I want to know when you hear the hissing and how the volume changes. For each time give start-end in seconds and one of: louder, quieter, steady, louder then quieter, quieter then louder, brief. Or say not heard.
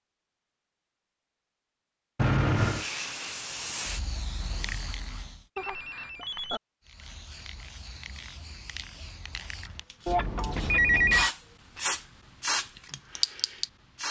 2.5-5.5 brief
6.8-14.0 louder.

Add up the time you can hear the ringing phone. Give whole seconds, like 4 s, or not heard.
3 s.